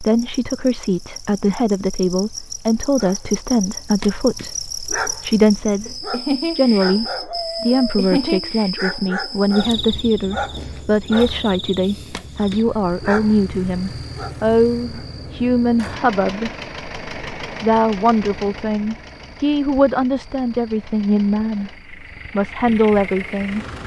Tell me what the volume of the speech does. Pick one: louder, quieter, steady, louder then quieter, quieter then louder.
steady.